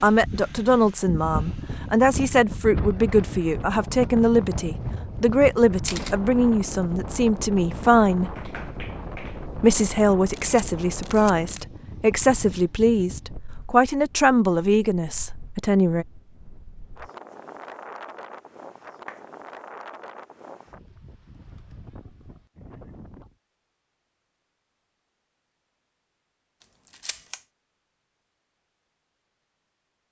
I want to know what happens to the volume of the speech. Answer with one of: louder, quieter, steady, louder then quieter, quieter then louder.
steady.